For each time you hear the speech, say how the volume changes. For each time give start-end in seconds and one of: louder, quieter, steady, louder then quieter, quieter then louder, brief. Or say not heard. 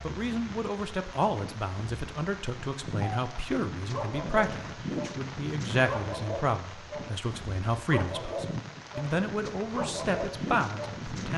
0.0-11.3 steady.